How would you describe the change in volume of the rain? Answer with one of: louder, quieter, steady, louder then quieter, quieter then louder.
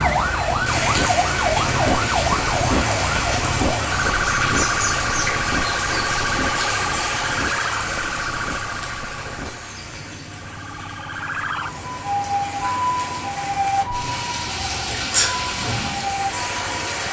quieter then louder.